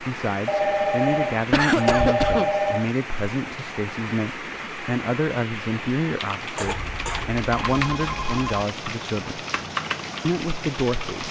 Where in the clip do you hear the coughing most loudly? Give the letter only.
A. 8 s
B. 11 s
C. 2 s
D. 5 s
C.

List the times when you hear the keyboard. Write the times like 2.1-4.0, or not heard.
6.2-11.2.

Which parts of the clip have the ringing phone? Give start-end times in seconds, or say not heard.
0.5-2.9, 6.6-8.7.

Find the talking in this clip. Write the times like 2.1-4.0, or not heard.
0.0-9.4, 10.2-11.2.